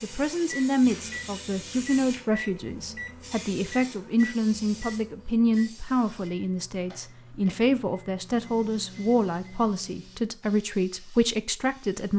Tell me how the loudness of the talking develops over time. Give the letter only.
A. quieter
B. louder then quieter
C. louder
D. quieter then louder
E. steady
E.